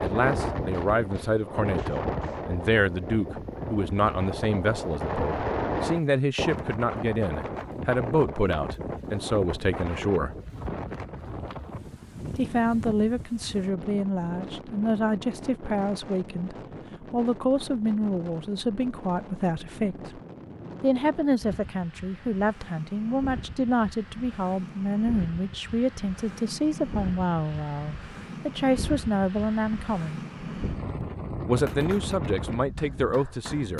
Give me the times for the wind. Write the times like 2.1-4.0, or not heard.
0.0-33.7.